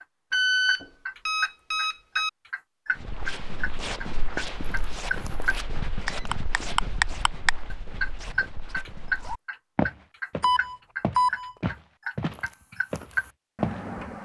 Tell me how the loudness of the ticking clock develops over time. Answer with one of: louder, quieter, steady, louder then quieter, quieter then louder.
louder then quieter.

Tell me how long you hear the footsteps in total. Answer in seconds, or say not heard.
11 s.